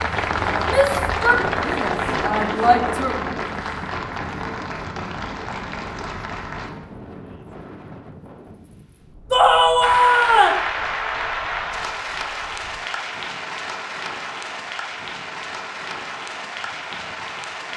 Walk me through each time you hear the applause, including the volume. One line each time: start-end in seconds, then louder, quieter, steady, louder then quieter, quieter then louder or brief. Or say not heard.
0.0-6.7 quieter
9.8-17.7 quieter.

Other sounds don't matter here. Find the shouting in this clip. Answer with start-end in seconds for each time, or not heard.
0.7-3.4, 9.3-10.7.